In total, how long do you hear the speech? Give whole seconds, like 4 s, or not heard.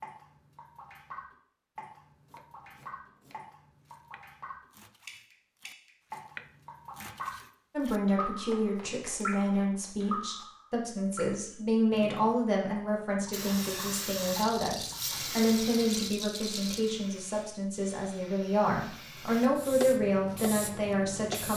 14 s.